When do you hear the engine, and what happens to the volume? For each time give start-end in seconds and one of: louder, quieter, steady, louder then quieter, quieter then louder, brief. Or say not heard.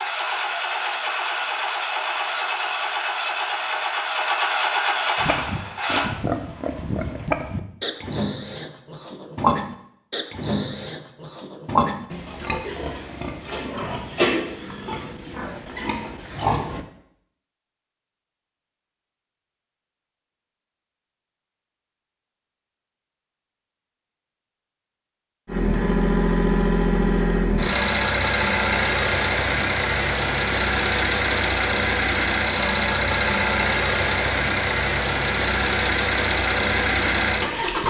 0.0-6.1 steady
25.4-37.8 steady.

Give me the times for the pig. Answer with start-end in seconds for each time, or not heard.
5.2-16.9.